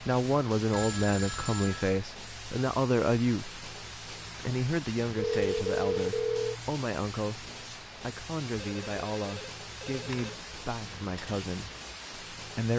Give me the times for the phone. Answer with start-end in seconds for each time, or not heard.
0.7-1.9, 5.2-6.5, 8.6-10.3.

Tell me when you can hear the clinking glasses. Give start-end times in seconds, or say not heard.
not heard.